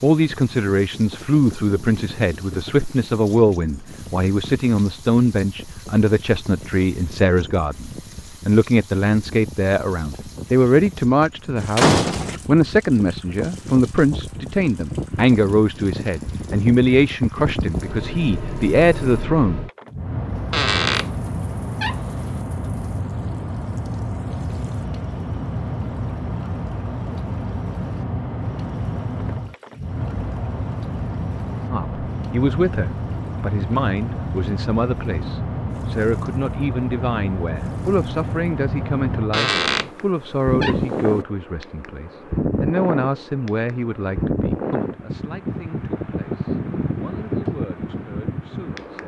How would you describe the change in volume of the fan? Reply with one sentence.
The volume of the fan goes up.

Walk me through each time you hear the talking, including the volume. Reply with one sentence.
The talking can be heard from 0.0 to 19.6 s, at a steady volume; and from 31.6 to 49.0 s, getting quieter.